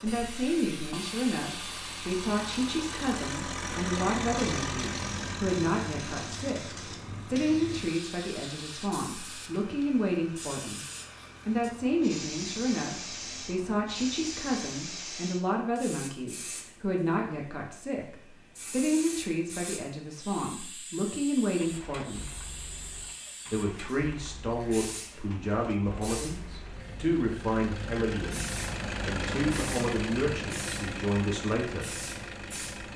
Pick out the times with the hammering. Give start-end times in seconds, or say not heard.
not heard.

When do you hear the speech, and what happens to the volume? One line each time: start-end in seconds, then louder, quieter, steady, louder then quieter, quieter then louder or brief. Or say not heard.
0.0-10.8 steady
11.4-22.2 steady
23.5-31.9 steady.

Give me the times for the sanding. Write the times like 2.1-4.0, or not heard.
not heard.